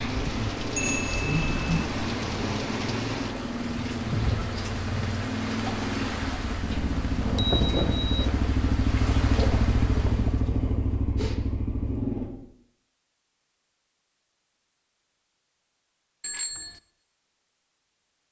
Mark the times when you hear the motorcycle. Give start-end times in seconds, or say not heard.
0.0-12.3.